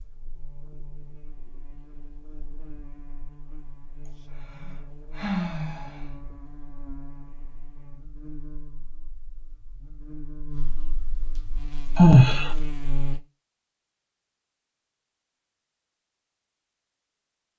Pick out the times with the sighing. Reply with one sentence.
The sighing can be heard from 4.0 to 6.0 s and from 11.9 to 12.5 s.